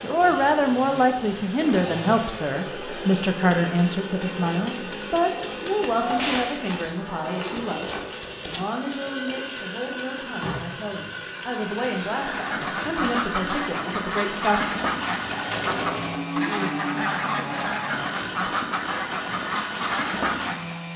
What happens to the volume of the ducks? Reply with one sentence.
The volume of the ducks stays about the same.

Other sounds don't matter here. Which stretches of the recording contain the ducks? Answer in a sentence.
The ducks can be heard from 12.1 to 20.9 s.